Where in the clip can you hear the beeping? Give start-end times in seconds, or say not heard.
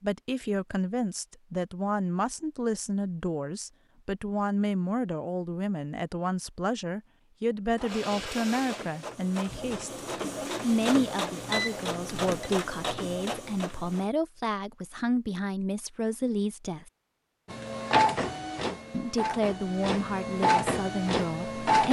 11.5-12.5.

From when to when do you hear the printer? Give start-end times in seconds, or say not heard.
7.8-14.1, 17.5-21.8.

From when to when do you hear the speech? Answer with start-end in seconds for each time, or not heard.
0.0-10.0, 10.6-16.9, 18.9-21.8.